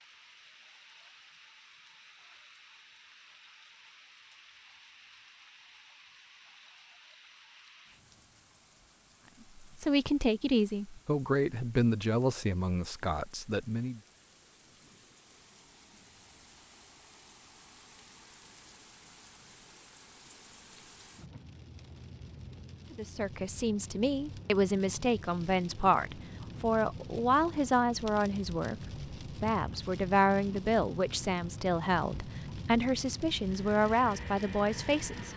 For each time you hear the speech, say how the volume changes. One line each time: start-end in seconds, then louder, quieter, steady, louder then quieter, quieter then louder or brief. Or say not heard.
9.6-14.0 quieter
22.9-35.3 steady.